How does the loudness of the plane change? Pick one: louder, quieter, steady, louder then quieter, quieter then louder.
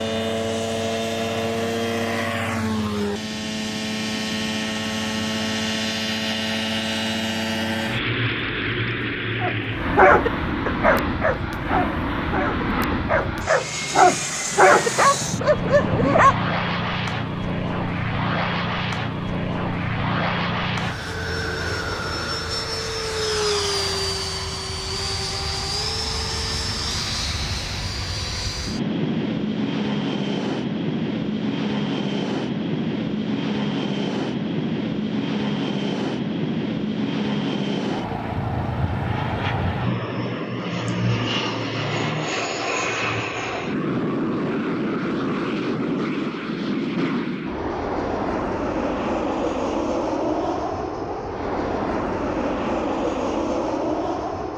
steady.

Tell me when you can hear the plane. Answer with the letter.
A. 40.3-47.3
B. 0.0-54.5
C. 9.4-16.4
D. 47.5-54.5
B.